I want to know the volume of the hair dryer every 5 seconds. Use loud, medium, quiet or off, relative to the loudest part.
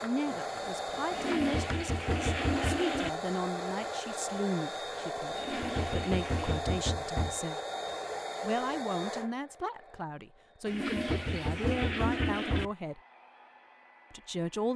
loud, loud, quiet.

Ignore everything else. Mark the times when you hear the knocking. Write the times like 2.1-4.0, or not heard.
1.4-3.0, 5.6-7.3, 10.9-12.7.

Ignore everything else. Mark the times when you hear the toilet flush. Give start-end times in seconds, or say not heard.
1.1-3.1, 5.3-6.7, 10.7-12.7.